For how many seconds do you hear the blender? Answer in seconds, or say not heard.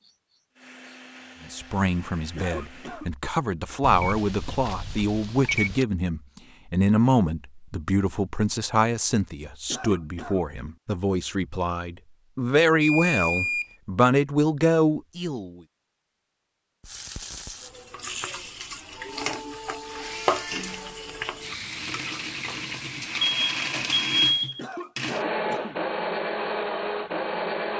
11 s.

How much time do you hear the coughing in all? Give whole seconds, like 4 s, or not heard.
3 s.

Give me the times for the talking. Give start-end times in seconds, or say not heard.
1.5-15.6.